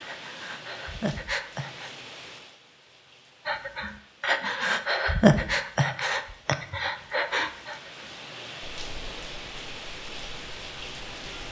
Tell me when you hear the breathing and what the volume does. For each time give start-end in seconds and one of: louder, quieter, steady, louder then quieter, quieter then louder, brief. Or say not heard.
0.0-1.9 brief
3.5-11.4 quieter.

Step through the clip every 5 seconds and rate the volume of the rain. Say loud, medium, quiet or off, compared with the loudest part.
medium, loud, loud.